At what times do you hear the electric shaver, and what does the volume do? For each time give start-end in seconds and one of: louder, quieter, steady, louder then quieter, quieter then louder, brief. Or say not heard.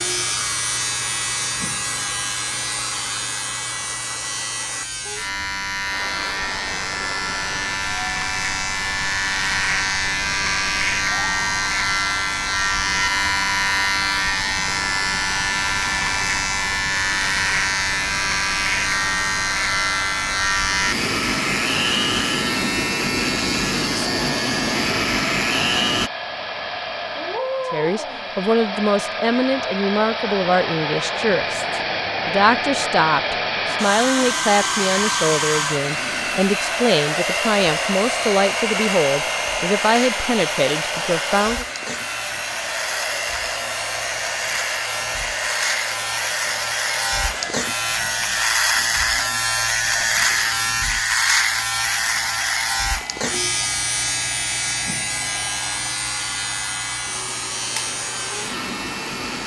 0.0-26.1 louder
35.9-59.4 louder then quieter.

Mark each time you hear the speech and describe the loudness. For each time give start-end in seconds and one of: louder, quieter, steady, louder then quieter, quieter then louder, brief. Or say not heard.
27.7-41.6 steady.